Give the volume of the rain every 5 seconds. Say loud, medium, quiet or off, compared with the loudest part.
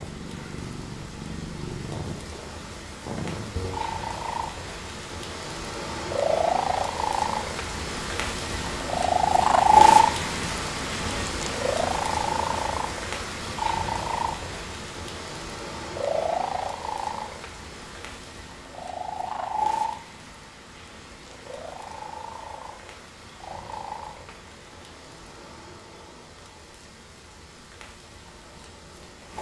medium, loud, loud, medium, quiet, quiet.